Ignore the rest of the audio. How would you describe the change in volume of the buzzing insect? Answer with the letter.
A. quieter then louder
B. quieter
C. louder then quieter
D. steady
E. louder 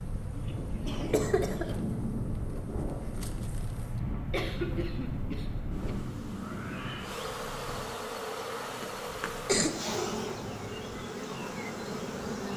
E.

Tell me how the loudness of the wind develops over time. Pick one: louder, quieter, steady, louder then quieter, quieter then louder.
quieter.